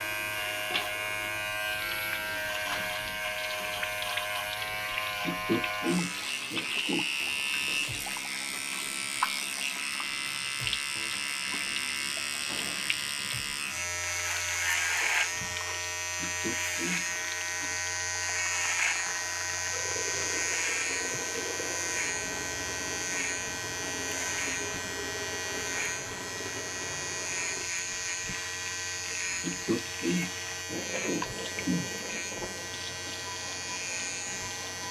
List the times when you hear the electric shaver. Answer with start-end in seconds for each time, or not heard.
0.0-34.8.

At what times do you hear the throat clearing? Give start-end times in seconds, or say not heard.
5.2-7.0, 16.2-17.1, 29.4-31.9.